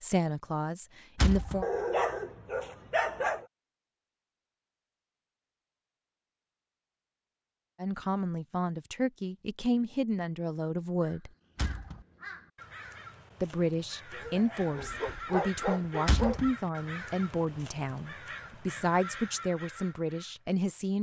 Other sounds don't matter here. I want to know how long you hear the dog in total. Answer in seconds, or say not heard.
4 s.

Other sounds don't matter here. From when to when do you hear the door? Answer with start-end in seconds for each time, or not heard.
1.1-1.6, 11.6-12.1, 16.1-16.5.